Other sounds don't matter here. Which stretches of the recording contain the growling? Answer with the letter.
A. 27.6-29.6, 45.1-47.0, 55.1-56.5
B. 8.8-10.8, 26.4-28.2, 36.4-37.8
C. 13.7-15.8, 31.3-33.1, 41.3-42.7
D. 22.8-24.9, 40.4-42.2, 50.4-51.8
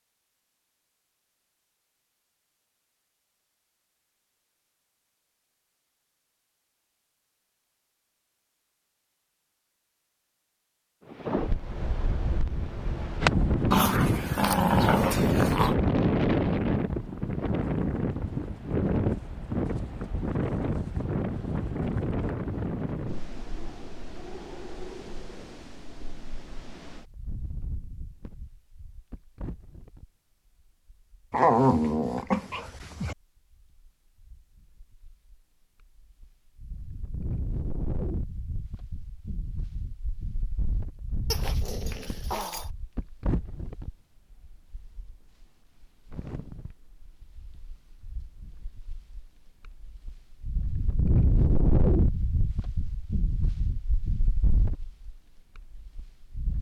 C.